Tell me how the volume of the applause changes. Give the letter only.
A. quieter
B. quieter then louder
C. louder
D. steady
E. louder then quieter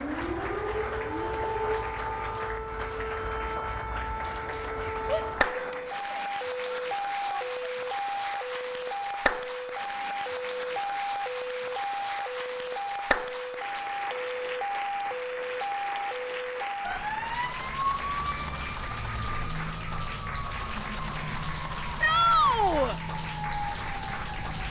D.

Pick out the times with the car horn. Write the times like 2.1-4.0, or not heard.
0.1-2.5.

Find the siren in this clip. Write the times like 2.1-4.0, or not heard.
0.0-24.6.